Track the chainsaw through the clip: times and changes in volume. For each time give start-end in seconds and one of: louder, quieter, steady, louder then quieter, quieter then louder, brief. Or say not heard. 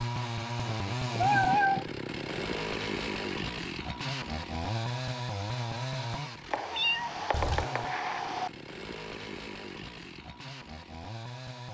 0.0-11.6 quieter.